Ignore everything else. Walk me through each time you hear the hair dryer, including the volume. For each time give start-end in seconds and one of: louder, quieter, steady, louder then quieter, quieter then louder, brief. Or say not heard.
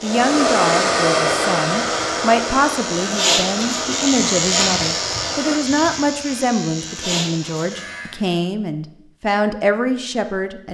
0.0-5.6 quieter.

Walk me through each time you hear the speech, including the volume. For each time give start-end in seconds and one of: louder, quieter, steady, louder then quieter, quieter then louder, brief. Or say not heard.
0.0-10.7 steady.